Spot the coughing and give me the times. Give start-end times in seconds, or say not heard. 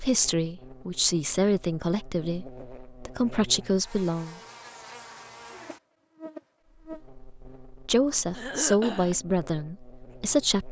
8.3-9.2.